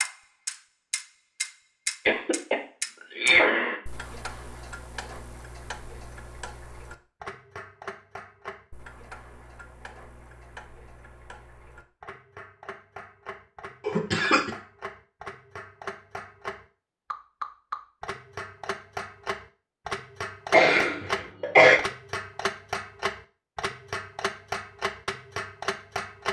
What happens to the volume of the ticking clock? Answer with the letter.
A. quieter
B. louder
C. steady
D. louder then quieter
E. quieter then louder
E.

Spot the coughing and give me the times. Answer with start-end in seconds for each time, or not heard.
2.0-3.8, 13.8-14.5, 20.5-21.8.